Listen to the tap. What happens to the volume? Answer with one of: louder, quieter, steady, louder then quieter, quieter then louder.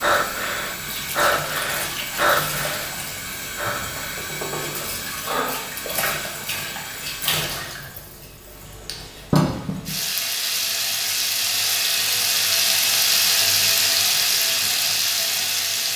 louder.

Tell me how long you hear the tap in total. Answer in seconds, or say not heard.
16 s.